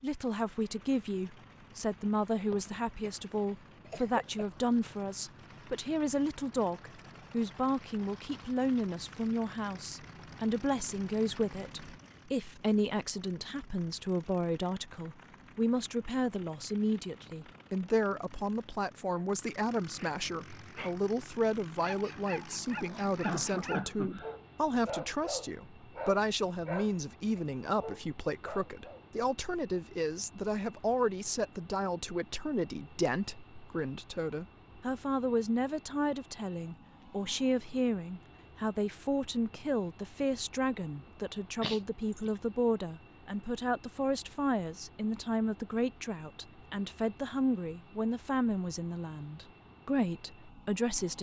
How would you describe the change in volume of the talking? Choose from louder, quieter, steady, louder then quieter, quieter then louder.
steady.